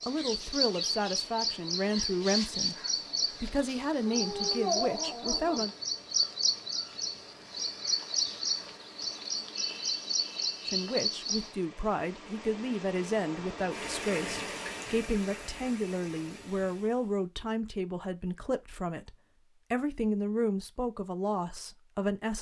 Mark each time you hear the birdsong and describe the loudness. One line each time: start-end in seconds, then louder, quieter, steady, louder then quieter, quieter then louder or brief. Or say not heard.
0.0-11.6 steady.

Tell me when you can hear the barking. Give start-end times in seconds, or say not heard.
4.0-5.7.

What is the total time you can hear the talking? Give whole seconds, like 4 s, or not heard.
17 s.